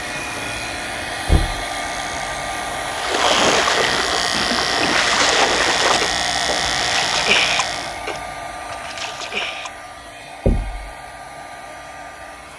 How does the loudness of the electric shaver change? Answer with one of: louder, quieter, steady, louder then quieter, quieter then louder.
louder.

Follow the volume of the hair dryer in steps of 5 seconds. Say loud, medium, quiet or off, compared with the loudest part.
loud, loud, medium.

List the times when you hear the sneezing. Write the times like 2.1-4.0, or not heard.
not heard.